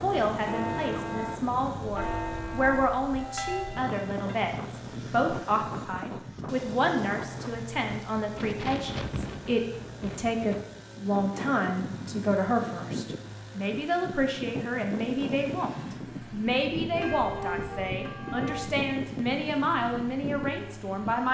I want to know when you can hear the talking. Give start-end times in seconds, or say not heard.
0.0-15.7, 16.3-21.2.